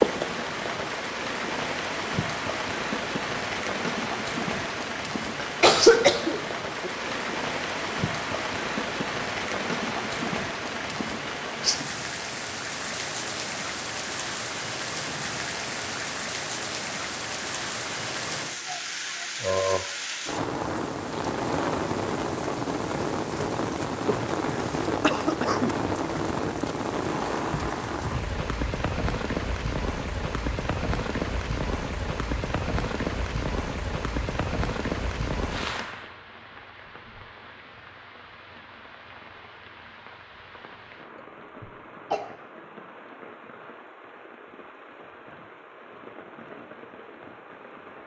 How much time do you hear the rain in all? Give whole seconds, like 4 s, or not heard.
48 s.